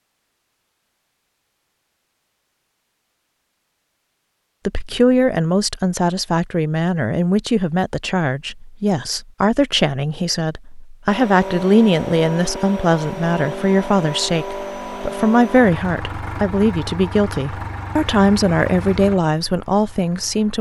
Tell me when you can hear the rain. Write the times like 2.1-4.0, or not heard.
not heard.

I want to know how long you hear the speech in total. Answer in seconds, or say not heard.
16 s.